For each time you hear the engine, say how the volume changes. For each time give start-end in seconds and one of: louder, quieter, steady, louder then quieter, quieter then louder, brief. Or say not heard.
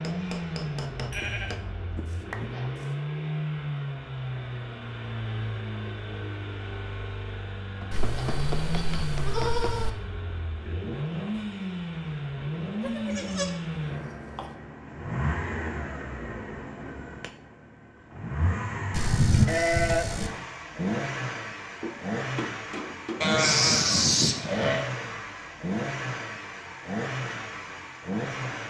0.0-28.6 steady.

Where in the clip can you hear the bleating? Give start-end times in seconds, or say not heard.
1.1-2.8, 7.9-9.9, 12.8-14.5, 18.9-20.3, 23.2-24.9.